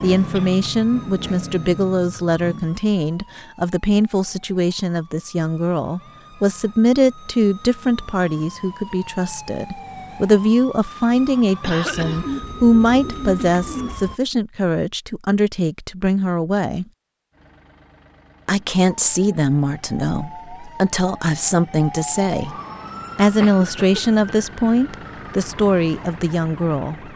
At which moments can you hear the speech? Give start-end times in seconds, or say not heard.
0.0-16.9, 18.4-22.6, 23.1-27.0.